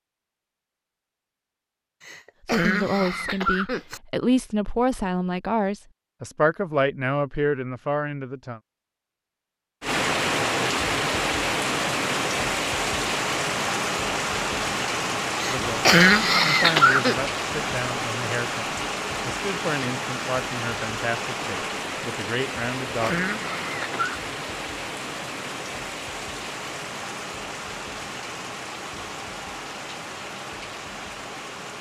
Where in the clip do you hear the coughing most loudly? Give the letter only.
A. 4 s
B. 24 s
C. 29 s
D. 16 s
D.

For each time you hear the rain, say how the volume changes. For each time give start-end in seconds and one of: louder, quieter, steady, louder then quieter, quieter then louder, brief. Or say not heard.
9.8-31.7 quieter.